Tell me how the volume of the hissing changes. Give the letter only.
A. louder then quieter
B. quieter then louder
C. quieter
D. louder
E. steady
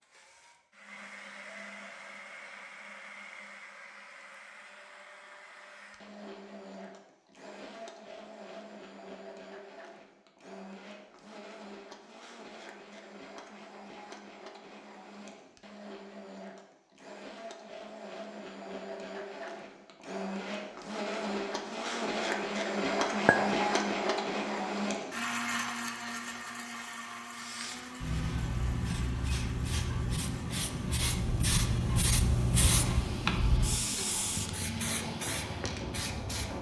A.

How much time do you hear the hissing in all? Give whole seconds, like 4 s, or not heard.
9 s.